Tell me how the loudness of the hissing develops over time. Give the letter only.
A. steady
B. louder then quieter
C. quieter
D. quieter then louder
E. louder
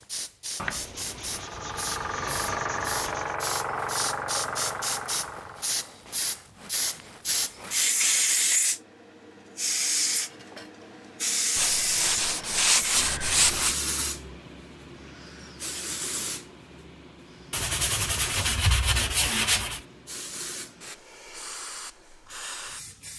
B.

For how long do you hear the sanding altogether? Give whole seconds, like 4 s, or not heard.
7 s.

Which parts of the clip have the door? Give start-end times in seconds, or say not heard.
not heard.